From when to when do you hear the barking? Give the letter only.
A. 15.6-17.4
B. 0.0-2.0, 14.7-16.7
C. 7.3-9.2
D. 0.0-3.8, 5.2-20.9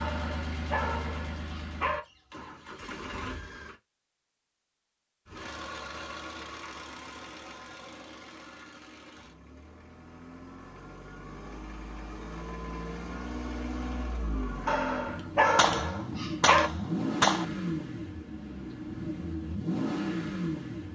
B.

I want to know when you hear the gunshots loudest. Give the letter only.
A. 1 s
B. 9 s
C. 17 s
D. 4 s
C.